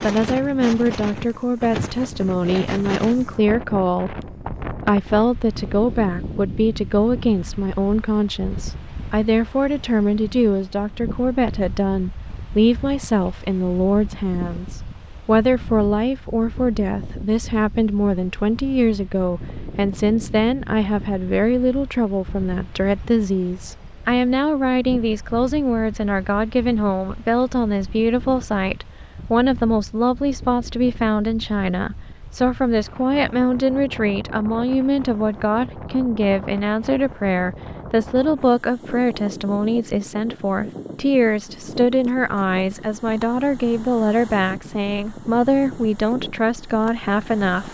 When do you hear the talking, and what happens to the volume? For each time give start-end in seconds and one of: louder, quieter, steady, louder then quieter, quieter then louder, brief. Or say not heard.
0.0-47.6 steady.